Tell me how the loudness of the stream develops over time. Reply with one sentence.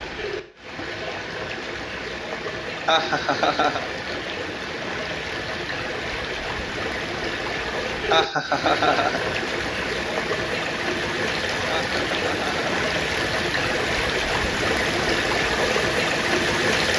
The loudness of the stream goes up.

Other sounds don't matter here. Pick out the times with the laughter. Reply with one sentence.
The laughter can be heard from 2.9 to 3.9 s, from 8.1 to 9.2 s and from 11.7 to 12.7 s.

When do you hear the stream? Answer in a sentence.
The stream can be heard from 0.0 to 16.9 s.